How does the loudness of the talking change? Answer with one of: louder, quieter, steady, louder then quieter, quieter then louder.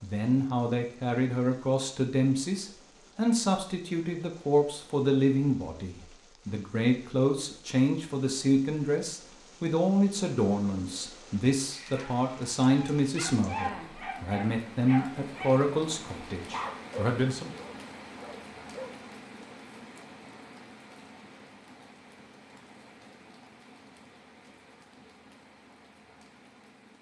steady.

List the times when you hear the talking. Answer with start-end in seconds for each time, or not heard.
0.0-17.5.